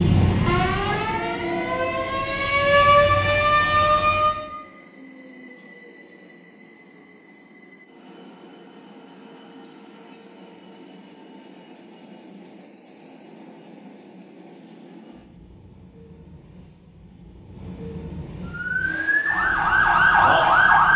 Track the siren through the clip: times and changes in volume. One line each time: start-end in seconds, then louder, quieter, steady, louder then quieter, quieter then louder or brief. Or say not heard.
0.0-4.4 quieter then louder
18.4-20.9 brief.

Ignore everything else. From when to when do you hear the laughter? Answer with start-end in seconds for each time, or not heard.
not heard.